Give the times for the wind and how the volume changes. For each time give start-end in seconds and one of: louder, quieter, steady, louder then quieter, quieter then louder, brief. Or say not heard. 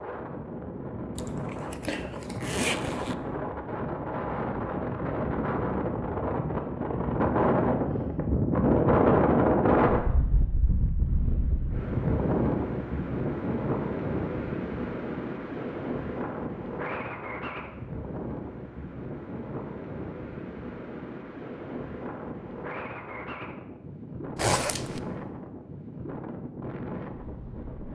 0.0-27.9 louder then quieter.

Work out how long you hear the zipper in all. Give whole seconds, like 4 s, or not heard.
3 s.